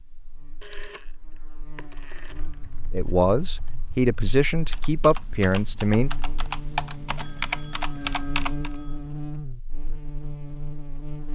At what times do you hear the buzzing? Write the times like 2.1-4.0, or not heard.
0.0-11.3.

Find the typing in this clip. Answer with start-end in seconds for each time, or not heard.
2.3-8.8.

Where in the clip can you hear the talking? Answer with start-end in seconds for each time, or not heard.
2.9-6.1.